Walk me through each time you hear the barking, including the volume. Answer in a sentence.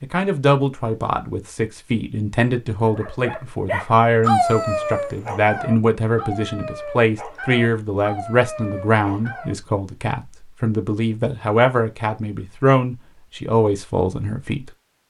You can hear the barking from 2.9 to 9.6 s, getting quieter.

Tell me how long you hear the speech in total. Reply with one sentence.
You can hear the speech for 15 seconds altogether.